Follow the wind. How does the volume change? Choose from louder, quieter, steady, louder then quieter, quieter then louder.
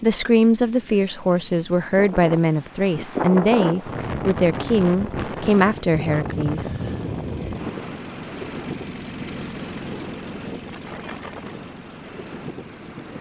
quieter.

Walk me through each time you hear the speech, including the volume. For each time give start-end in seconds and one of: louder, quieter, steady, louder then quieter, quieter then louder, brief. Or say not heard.
0.0-6.7 steady.